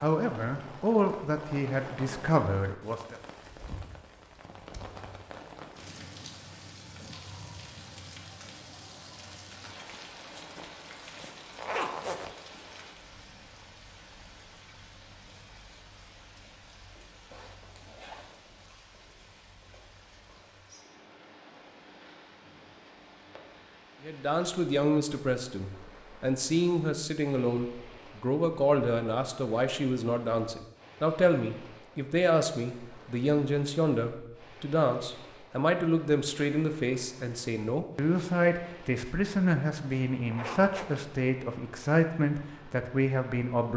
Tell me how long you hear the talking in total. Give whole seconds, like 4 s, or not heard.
23 s.